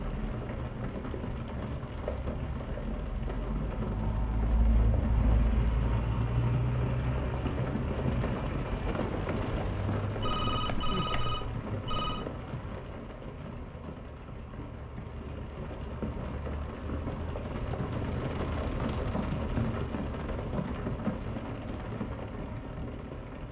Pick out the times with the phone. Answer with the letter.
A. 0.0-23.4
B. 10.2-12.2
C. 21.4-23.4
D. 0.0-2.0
B.